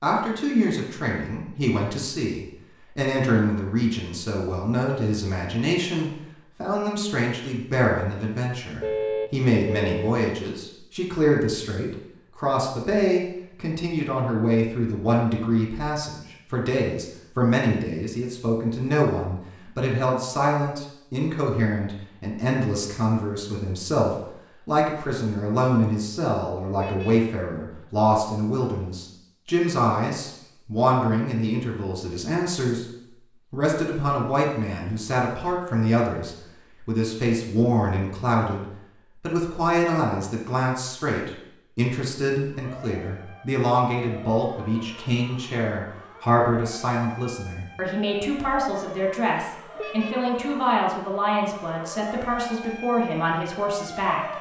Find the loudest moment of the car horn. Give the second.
9 s.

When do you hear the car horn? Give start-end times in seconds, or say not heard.
8.8-10.2, 26.8-27.2, 49.8-50.4.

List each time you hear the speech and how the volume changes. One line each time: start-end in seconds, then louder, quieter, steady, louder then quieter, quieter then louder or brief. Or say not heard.
0.0-54.3 steady.